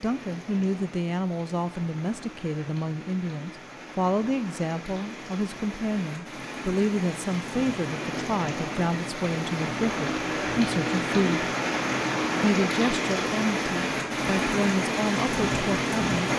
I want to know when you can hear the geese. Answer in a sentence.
You can't hear the geese here.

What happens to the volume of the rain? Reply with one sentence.
The volume of the rain goes up.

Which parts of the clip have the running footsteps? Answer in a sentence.
You can't hear the running footsteps here.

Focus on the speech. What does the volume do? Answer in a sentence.
The volume of the speech stays about the same.